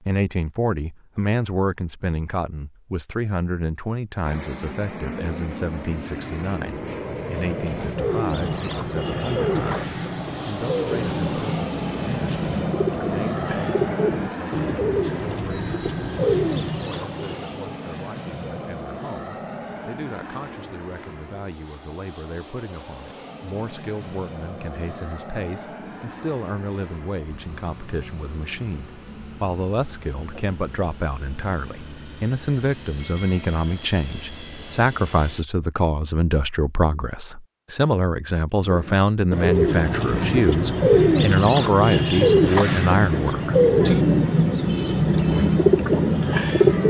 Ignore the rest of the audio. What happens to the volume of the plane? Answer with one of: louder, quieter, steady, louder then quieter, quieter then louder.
quieter.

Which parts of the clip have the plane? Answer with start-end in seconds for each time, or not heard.
4.2-35.5.